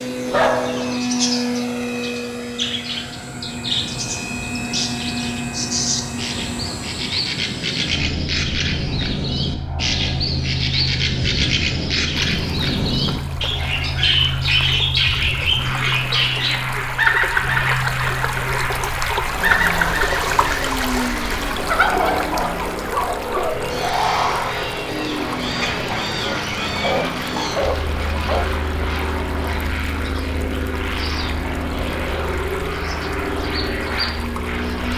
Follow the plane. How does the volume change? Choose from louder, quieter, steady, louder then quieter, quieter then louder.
steady.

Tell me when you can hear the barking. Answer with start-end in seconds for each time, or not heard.
0.3-1.0, 26.8-28.4.